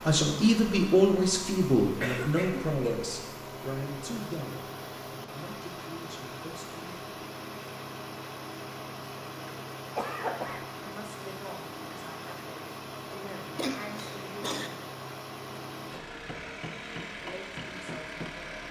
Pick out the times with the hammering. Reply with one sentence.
The hammering can be heard from 16.1 to 18.5 s.